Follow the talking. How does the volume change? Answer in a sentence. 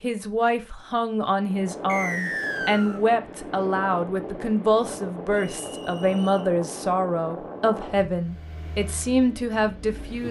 The volume of the talking stays about the same.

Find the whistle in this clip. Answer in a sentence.
You can hear the whistle from 1.9 to 3.0 s and from 5.3 to 6.5 s.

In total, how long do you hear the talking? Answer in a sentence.
You can hear the talking for 10 seconds altogether.